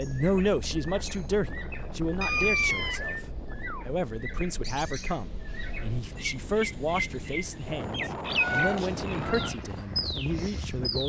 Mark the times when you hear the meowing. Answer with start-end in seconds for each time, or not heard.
2.2-3.1, 8.3-9.6.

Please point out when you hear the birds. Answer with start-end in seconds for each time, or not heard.
0.0-11.0.